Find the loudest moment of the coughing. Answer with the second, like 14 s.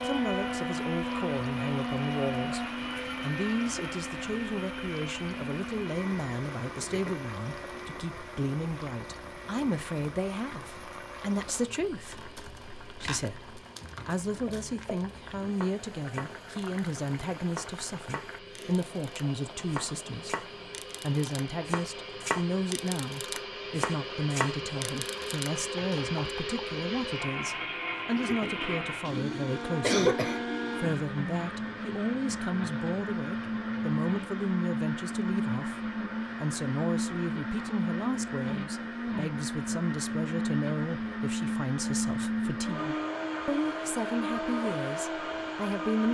30 s.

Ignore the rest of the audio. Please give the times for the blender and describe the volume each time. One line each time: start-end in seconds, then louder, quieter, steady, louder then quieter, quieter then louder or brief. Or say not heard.
0.0-46.0 quieter then louder.